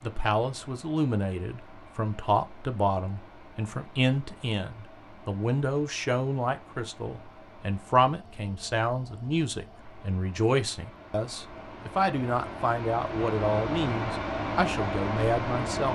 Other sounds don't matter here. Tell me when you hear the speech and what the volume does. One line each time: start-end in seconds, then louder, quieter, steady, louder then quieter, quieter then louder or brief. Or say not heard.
0.0-15.9 steady.